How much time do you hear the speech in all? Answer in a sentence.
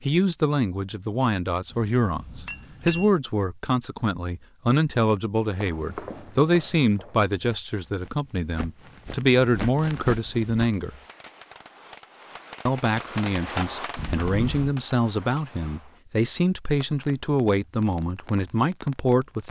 You can hear the speech for 18 seconds altogether.